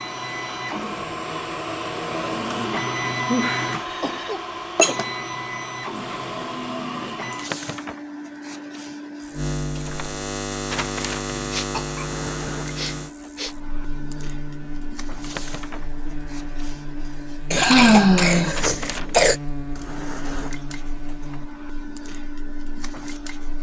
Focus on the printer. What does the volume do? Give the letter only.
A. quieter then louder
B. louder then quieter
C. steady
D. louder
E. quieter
E.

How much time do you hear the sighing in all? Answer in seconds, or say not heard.
4 s.